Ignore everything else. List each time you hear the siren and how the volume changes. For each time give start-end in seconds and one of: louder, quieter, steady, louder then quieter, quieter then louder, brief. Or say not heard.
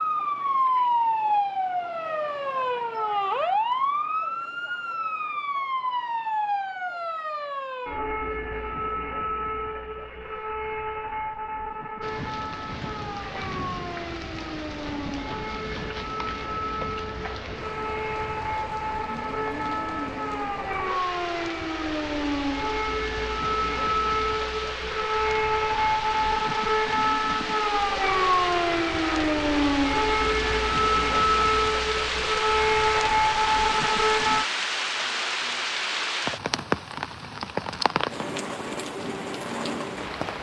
0.0-34.5 quieter then louder.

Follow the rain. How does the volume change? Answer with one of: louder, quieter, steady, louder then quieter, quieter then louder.
louder.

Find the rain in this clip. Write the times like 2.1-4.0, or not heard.
12.0-40.3.